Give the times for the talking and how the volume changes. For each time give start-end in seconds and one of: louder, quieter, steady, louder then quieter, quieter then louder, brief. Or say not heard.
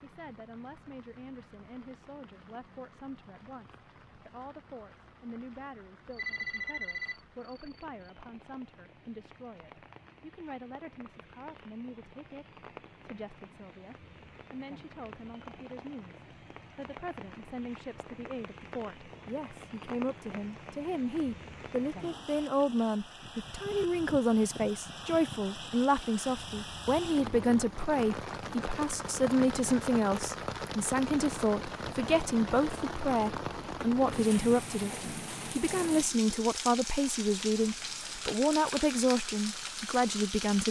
0.0-40.6 louder.